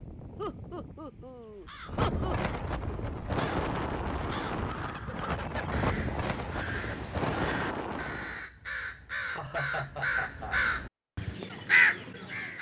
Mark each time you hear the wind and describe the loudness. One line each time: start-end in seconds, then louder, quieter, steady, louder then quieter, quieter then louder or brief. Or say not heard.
0.0-8.4 louder.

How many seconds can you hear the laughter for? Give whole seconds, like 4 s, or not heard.
4 s.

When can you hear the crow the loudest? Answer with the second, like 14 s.
12 s.